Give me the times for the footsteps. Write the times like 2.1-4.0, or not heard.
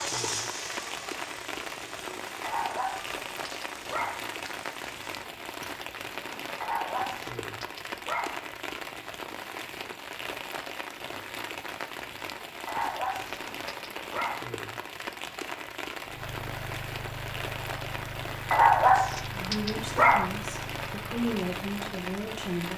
not heard.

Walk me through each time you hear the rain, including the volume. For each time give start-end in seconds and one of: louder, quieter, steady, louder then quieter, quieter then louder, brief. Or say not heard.
0.0-22.7 steady.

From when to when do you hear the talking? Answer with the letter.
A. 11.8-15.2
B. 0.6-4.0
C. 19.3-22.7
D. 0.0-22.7
C.